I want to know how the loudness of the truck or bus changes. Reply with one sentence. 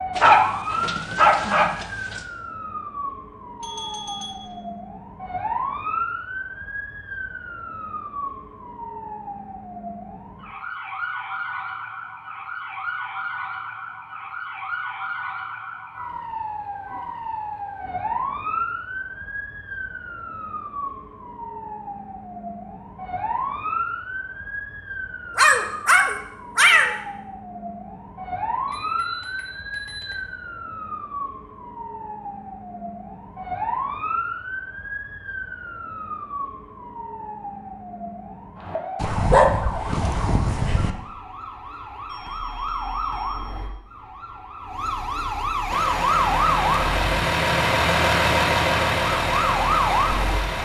The volume of the truck or bus goes up, then down.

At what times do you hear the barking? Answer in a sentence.
You can hear the barking from 0.1 to 2.2 s, from 25.4 to 26.9 s and from 39.0 to 40.9 s.